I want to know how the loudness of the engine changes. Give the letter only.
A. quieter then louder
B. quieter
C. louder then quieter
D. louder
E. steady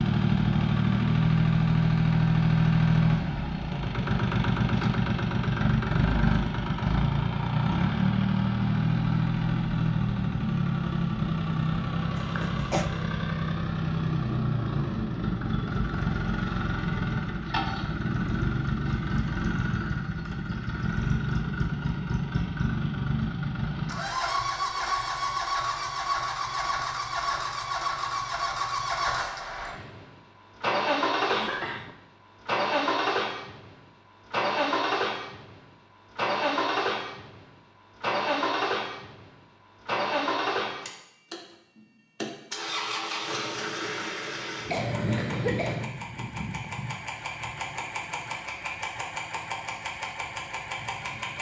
B.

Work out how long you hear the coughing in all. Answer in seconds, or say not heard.
3 s.